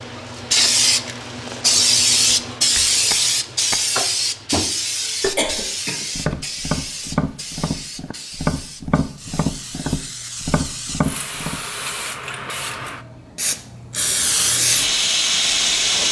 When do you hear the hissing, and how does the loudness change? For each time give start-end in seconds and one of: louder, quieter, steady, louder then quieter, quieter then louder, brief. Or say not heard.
0.0-16.0 quieter then louder.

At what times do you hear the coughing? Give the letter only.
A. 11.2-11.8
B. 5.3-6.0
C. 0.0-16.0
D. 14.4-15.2
B.